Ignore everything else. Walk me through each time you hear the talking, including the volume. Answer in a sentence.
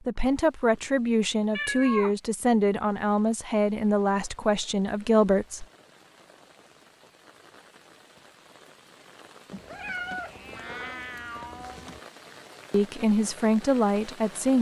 The talking can be heard from 0.1 to 5.7 s, at a steady volume; and briefly from 12.7 to 14.5 s.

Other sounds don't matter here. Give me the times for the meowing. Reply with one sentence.
The meowing can be heard from 1.6 to 2.1 s and from 9.5 to 12.0 s.